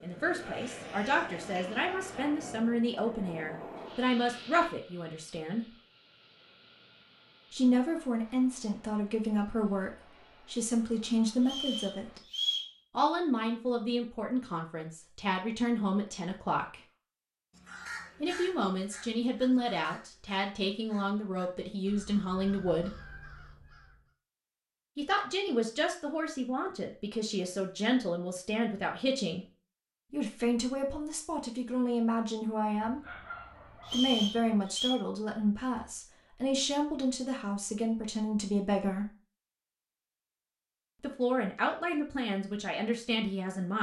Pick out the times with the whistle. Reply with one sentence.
You can hear the whistle from 11.4 to 12.7 s and from 33.9 to 35.0 s.